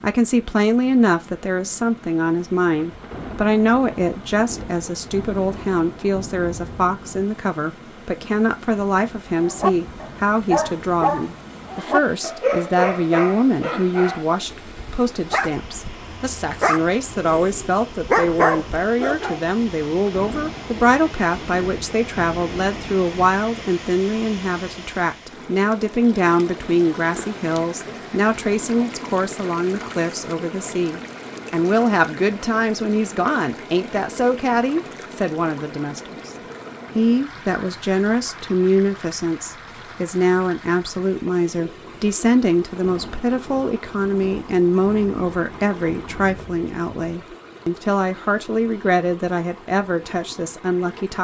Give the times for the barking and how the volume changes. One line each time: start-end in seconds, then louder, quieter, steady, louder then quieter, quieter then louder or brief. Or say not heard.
9.4-19.4 quieter then louder.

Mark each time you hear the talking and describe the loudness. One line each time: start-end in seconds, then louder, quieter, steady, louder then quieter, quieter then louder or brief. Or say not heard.
0.0-36.3 steady
37.0-51.1 steady.